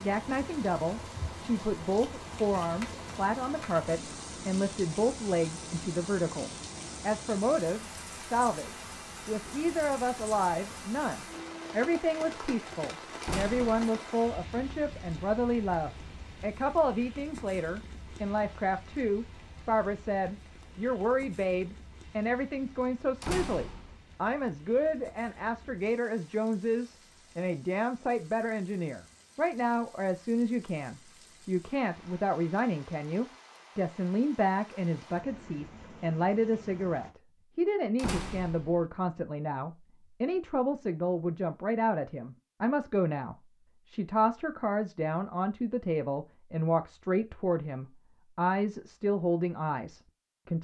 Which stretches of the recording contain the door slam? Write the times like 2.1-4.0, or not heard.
13.2-13.9, 23.2-24.0, 38.0-38.9.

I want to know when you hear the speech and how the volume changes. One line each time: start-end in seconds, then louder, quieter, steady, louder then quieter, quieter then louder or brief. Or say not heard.
0.0-50.6 steady.